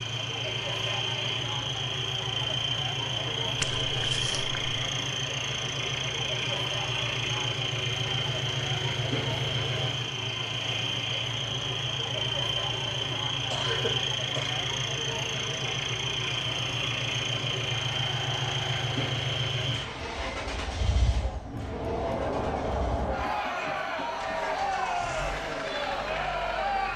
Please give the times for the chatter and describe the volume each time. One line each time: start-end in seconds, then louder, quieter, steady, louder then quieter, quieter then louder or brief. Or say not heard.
0.0-26.9 louder.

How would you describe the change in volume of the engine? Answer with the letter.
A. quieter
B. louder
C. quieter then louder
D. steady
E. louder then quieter
A.